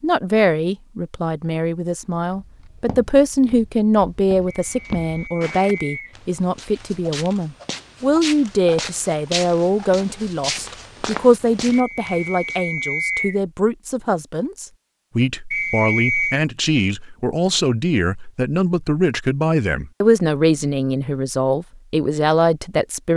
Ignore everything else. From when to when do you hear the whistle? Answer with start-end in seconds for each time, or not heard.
4.5-6.2, 11.7-13.4, 15.5-16.4.